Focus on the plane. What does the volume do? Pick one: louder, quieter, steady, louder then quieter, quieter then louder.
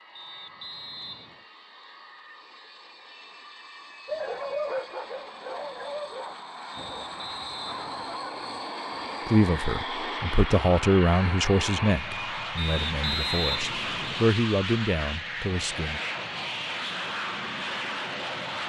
louder.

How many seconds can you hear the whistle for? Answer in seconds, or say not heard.
4 s.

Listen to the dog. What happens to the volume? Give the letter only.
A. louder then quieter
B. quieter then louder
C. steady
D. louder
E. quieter
E.